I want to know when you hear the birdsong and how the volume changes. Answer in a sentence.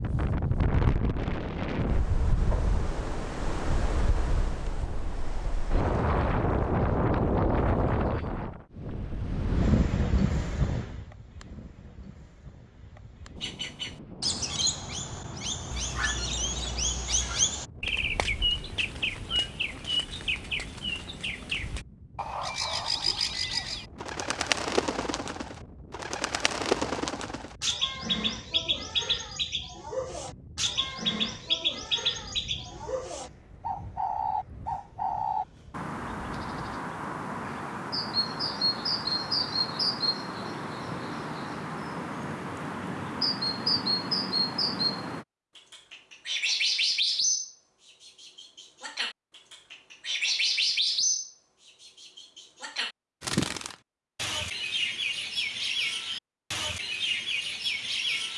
The birdsong can be heard from 13.4 to 58.3 s, at a steady volume.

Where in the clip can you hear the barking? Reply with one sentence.
The barking can be heard from 15.7 to 17.4 s.